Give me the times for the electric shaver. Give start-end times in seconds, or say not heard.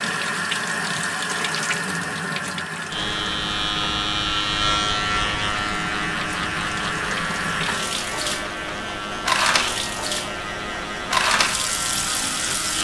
2.9-12.7.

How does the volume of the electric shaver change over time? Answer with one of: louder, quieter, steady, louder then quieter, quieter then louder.
quieter.